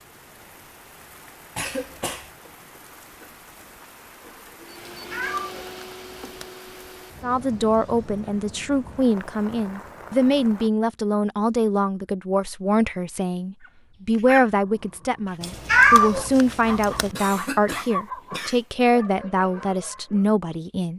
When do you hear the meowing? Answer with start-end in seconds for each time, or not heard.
4.9-6.5, 15.4-17.1.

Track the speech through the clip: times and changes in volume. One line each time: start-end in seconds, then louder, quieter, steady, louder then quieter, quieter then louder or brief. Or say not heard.
7.2-20.9 steady.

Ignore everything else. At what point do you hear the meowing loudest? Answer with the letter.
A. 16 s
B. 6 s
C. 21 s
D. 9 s
A.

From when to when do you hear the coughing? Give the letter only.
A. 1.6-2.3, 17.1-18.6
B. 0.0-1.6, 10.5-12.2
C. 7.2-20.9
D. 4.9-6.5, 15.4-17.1
A.